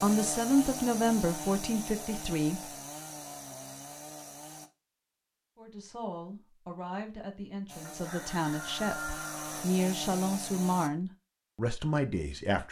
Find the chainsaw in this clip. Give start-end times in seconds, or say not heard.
0.0-4.7, 7.7-10.9.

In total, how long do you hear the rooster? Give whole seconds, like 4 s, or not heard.
2 s.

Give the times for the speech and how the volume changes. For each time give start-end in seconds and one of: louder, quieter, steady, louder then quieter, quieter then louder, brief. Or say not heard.
0.0-2.6 brief
5.5-12.6 louder.